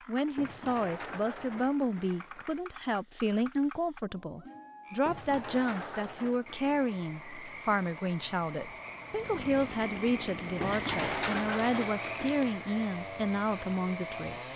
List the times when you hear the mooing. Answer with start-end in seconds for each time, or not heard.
not heard.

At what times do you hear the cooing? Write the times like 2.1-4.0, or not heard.
0.3-2.5, 5.0-7.7, 10.6-12.4.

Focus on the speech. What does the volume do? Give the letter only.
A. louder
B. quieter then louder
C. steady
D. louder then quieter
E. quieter
C.